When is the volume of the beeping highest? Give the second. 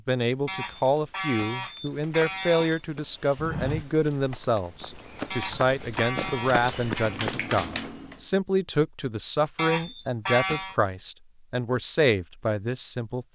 10 s.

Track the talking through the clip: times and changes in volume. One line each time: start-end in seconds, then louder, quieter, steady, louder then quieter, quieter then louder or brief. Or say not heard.
0.1-13.2 steady.